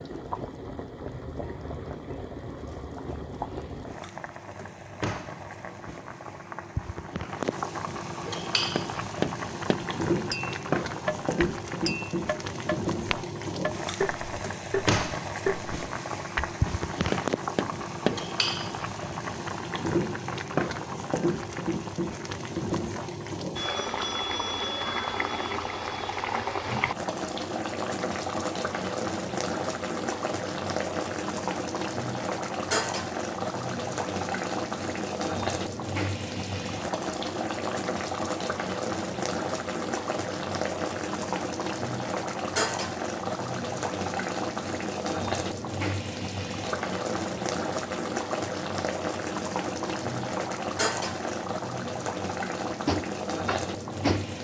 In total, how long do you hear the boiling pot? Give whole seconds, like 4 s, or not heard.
54 s.